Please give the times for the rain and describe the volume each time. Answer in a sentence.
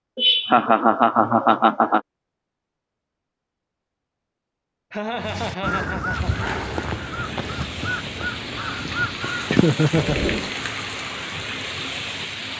The rain can be heard from 6.1 to 12.5 s, getting louder.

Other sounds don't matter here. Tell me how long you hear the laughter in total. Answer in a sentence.
The laughter can be heard for 4 seconds in total.